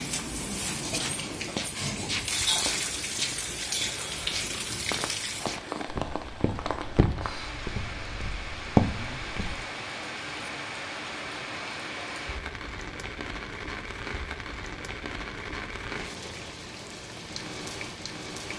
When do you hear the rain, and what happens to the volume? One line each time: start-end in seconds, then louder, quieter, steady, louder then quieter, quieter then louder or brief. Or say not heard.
0.0-18.5 quieter.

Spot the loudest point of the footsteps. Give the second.
9 s.